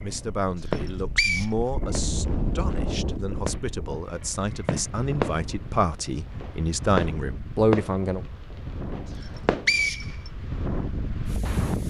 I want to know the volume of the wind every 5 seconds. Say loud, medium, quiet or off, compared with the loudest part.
loud, medium, loud.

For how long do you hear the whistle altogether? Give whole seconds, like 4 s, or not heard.
2 s.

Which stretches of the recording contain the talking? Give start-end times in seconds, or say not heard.
0.0-8.2.